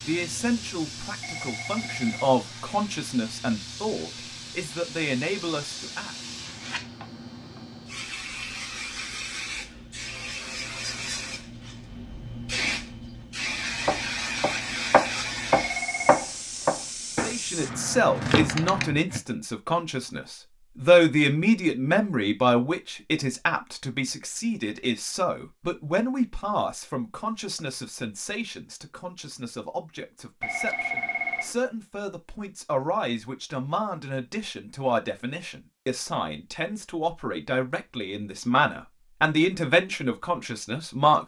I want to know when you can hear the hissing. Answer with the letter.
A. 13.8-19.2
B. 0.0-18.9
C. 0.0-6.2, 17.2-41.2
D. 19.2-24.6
B.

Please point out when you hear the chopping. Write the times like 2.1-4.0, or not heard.
13.8-19.2.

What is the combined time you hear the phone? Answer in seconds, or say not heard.
3 s.